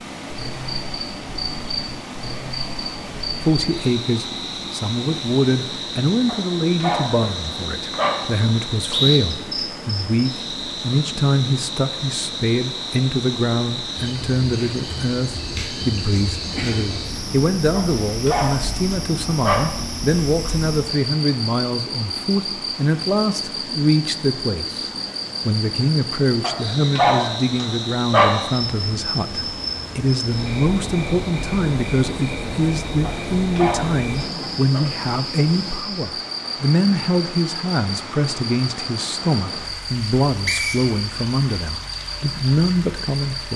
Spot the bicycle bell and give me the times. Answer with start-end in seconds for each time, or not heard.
not heard.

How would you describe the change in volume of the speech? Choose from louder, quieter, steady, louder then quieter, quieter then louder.
steady.